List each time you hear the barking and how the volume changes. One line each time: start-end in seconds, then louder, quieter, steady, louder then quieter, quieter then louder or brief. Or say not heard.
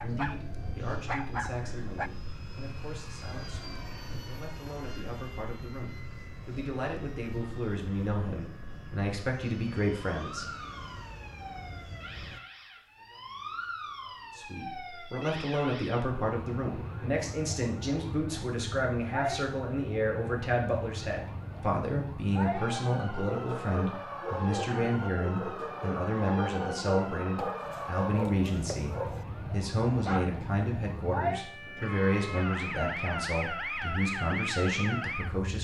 0.0-2.1 brief
23.1-30.4 steady.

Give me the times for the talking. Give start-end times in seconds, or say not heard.
0.0-10.4, 14.3-35.5.